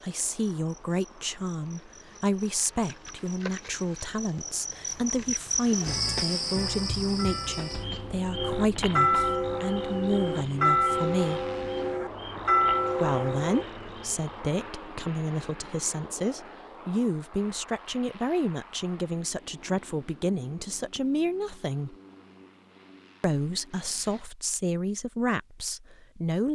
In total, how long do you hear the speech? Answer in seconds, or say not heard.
24 s.